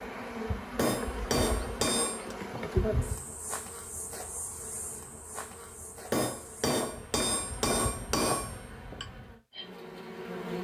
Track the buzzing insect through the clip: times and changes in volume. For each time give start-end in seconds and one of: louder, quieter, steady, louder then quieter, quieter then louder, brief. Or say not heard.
0.0-10.6 quieter.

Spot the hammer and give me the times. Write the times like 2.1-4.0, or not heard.
0.8-2.4, 6.1-9.1.